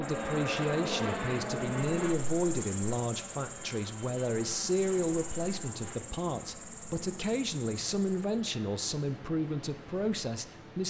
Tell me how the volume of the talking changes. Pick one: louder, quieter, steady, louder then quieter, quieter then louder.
steady.